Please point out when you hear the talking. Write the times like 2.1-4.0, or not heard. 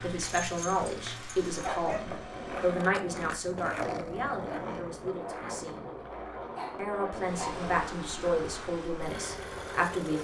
0.0-5.9, 6.8-10.1.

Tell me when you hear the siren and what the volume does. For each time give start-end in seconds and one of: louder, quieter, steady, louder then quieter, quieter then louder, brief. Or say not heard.
not heard.